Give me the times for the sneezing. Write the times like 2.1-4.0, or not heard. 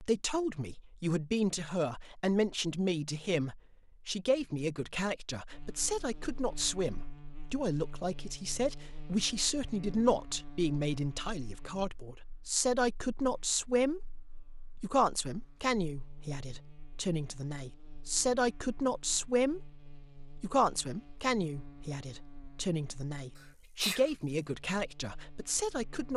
23.4-24.1.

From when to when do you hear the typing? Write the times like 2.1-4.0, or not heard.
not heard.